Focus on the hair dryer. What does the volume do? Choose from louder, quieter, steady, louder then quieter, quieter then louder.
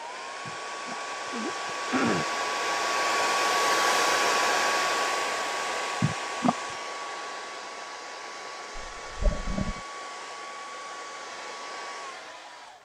louder then quieter.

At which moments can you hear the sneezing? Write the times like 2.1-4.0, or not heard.
0.5-2.2, 6.0-6.5, 8.8-9.8.